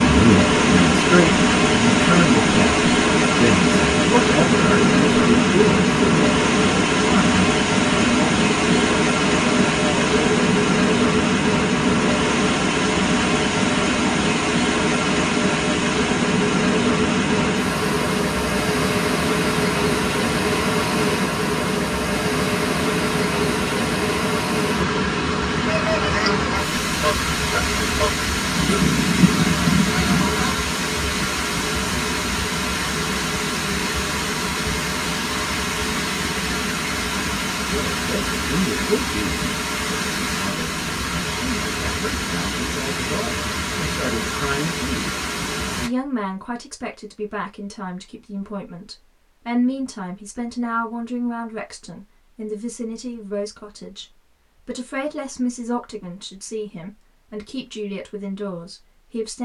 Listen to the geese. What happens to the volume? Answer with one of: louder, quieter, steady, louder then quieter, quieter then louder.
louder.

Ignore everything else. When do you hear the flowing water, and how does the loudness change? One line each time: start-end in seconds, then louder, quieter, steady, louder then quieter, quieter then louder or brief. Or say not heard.
0.0-45.9 quieter.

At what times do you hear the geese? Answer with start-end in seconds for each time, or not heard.
25.6-30.6.